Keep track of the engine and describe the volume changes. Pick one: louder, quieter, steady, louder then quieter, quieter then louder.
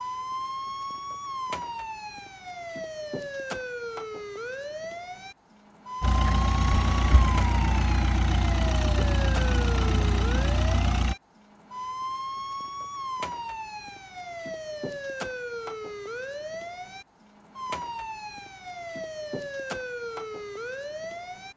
steady.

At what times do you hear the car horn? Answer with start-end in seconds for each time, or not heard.
6.7-7.3.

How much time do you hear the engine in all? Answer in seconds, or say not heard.
5 s.